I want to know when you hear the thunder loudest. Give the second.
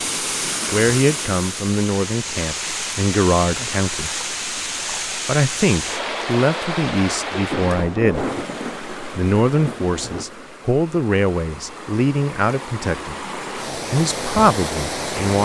8 s.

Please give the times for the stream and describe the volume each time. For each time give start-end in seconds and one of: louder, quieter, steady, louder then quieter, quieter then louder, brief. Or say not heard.
0.0-15.3 quieter then louder.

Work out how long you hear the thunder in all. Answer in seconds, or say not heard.
3 s.